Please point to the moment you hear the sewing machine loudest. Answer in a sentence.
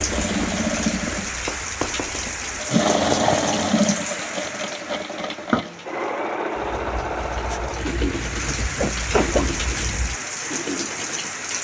The volume of the sewing machine peaks at 3 seconds.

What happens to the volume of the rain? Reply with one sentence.
The loudness of the rain goes down, then up.